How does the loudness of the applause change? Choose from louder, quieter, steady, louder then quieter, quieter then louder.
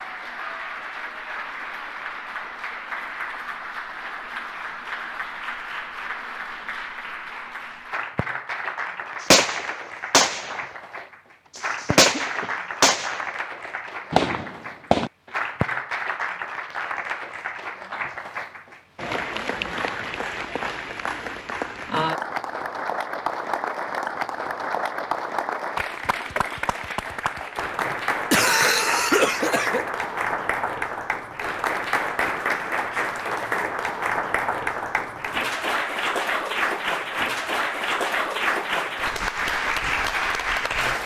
louder.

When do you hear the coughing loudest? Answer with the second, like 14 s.
28 s.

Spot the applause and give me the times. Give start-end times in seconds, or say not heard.
0.0-41.0.